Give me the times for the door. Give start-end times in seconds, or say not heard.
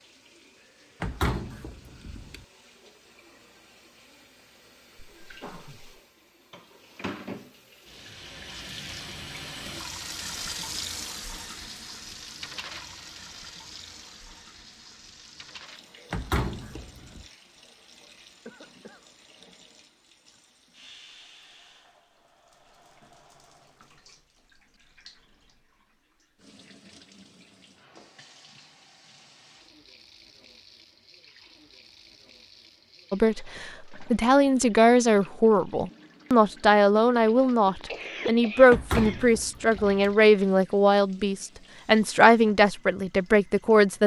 1.0-2.5, 16.1-17.2, 38.7-40.1.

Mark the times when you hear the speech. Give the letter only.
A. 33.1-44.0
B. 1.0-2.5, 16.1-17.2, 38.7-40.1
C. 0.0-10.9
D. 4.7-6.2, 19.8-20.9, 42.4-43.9
A.